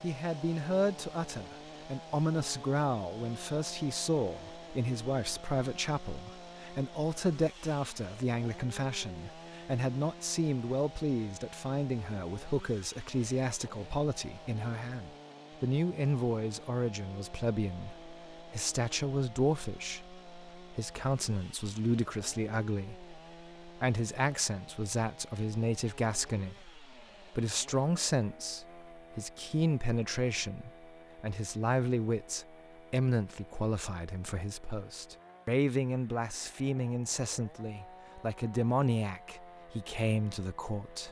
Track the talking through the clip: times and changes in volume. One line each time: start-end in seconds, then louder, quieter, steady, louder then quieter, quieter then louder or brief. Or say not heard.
0.0-41.0 steady.